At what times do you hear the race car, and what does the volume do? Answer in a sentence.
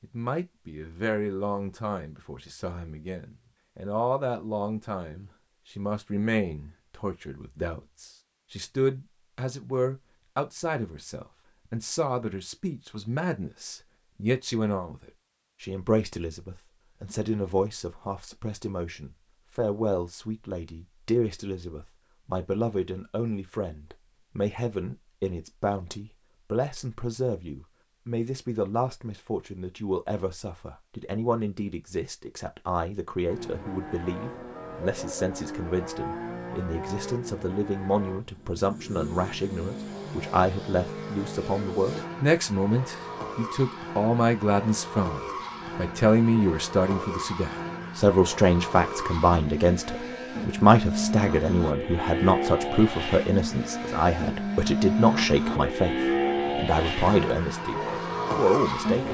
You can hear the race car from 33.2 to 59.0 s, getting louder.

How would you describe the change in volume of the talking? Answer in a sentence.
The volume of the talking goes up.